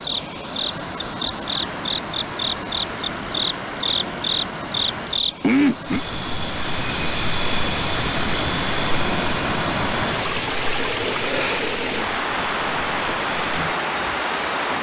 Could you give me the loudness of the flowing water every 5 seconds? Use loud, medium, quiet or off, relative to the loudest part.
medium, loud, loud.